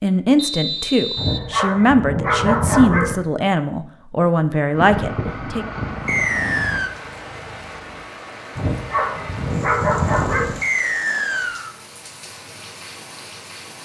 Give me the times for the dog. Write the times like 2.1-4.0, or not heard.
1.1-3.1, 8.6-10.6.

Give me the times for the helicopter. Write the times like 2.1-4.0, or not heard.
4.7-8.1.